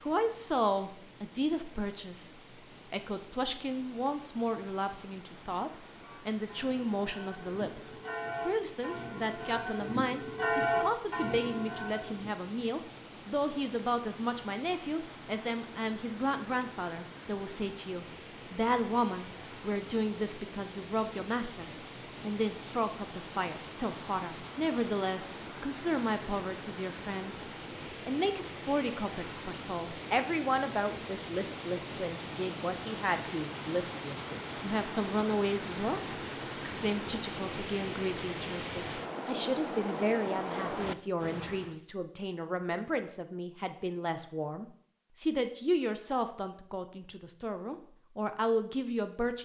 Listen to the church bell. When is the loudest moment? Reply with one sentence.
The volume of the church bell peaks at 11 seconds.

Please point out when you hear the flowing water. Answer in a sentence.
You can hear the flowing water from 0.0 to 41.8 s.